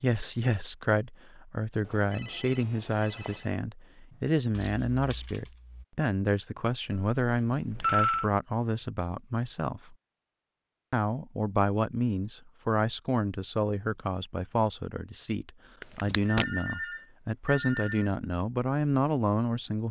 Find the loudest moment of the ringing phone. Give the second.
8 s.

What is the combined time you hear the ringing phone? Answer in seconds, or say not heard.
5 s.